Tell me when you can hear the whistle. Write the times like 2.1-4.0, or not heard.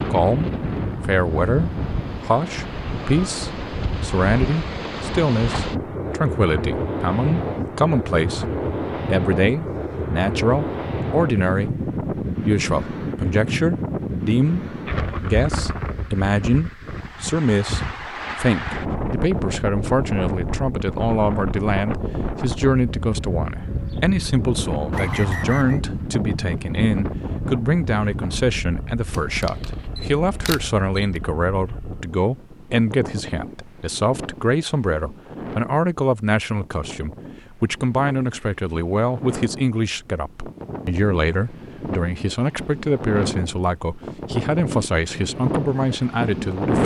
24.9-25.8.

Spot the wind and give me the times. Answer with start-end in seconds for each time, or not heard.
0.0-46.8.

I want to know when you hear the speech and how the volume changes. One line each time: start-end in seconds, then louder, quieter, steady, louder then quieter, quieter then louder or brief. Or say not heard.
0.1-46.8 steady.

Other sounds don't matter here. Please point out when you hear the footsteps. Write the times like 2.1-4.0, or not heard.
not heard.